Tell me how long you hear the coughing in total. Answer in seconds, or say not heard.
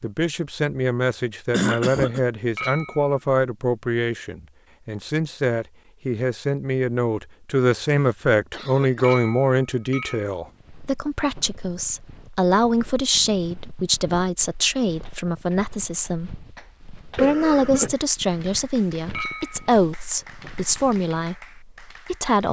3 s.